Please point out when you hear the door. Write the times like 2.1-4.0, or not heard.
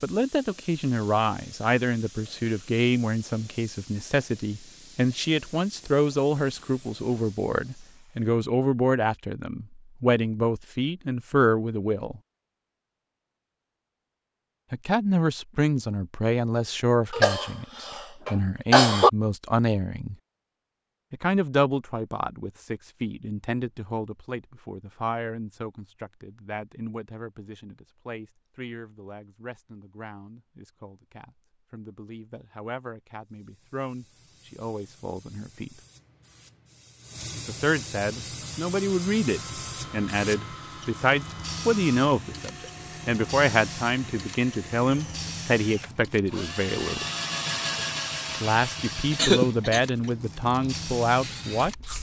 not heard.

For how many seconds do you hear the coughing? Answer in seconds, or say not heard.
3 s.